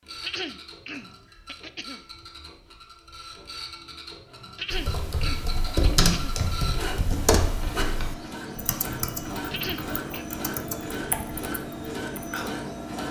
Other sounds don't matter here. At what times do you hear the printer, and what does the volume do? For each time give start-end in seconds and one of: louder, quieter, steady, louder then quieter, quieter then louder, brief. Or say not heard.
0.0-13.0 louder.